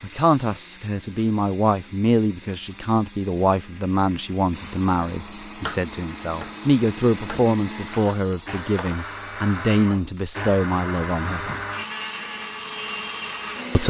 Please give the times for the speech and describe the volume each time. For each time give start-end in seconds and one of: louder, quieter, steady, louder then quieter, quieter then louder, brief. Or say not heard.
0.0-11.4 steady.